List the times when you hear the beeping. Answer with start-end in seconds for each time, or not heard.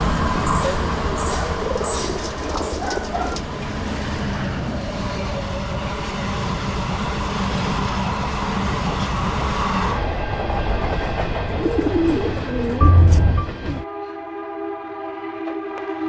12.8-13.4.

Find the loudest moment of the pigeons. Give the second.
12 s.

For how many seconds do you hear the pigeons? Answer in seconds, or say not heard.
4 s.